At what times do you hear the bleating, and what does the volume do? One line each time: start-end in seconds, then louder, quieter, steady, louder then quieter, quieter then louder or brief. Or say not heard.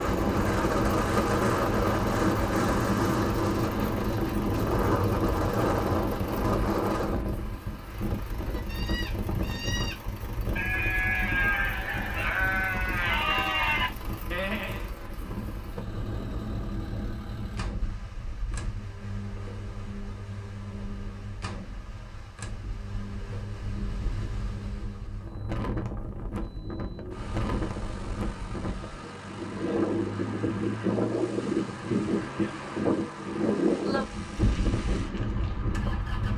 8.4-14.9 louder.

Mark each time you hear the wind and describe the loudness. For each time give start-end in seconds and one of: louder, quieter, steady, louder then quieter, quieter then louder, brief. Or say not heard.
0.0-36.3 quieter then louder.